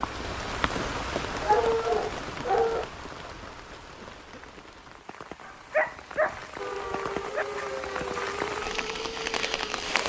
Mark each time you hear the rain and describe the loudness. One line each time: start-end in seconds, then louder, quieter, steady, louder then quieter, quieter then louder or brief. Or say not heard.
0.0-10.0 quieter then louder.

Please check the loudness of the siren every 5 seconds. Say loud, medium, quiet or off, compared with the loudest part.
off, loud.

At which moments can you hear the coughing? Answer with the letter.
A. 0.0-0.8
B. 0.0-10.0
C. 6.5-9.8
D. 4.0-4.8
D.